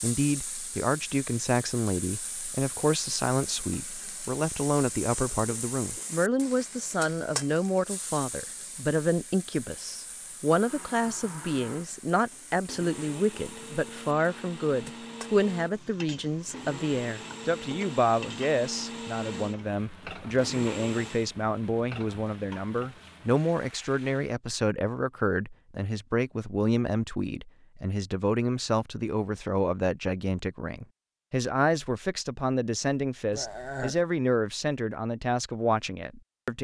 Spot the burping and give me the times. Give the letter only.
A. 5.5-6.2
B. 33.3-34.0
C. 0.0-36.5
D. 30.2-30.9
B.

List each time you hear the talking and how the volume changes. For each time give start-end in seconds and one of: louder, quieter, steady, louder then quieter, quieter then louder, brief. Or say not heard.
0.0-36.5 steady.